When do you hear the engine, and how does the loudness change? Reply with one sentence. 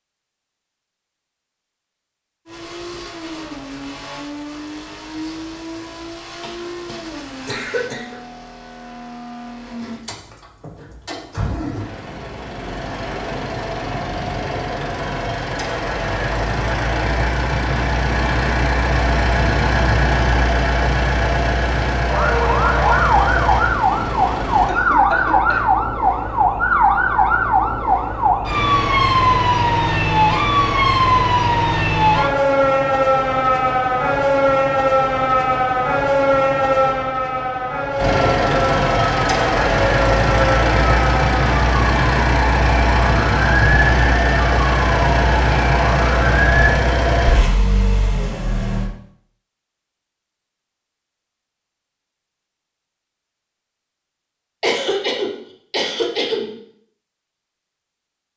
You can hear the engine from 2.5 to 24.8 s, getting louder; and from 38.0 to 48.9 s, at a steady volume.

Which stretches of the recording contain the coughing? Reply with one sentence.
The coughing can be heard from 6.4 to 8.2 s, from 24.6 to 25.6 s and from 54.6 to 56.5 s.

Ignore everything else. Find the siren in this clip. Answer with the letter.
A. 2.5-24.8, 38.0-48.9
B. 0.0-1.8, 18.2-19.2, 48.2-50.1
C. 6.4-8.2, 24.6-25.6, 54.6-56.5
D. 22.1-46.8
D.